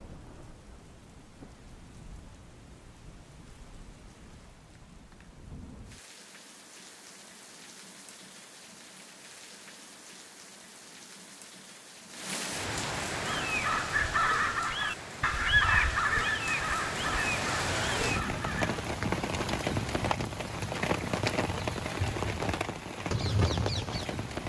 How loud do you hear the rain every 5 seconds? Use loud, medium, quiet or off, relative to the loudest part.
quiet, quiet, medium, loud, loud.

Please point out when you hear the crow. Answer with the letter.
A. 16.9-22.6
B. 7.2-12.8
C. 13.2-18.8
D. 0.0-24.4
C.